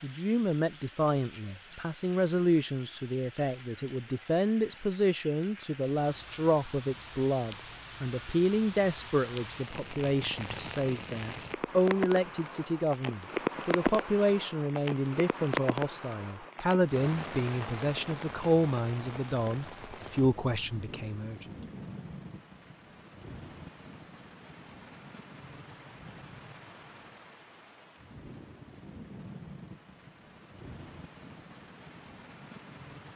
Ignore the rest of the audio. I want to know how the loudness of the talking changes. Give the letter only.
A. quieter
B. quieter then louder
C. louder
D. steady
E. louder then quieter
D.